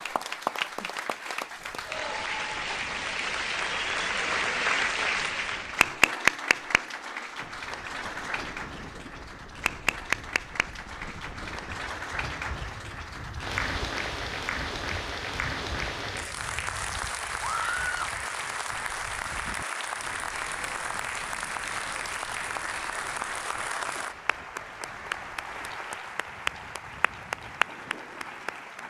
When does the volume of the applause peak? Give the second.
6 s.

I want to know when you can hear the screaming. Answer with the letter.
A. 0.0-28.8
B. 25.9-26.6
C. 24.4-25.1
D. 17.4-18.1
D.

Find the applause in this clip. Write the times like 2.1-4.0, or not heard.
0.0-28.8.